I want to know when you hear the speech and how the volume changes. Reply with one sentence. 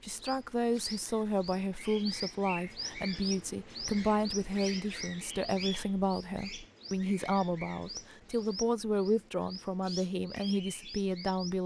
You can hear the speech from 0.0 to 11.6 s, at a steady volume.